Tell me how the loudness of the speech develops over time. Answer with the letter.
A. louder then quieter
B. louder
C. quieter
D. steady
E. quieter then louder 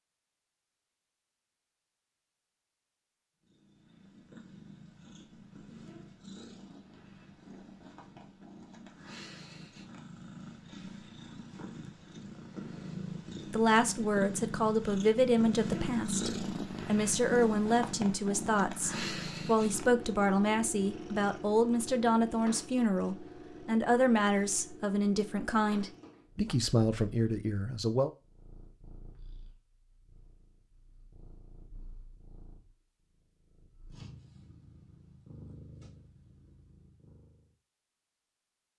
D.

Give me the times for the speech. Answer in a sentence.
You can hear the speech from 13.5 to 28.1 s.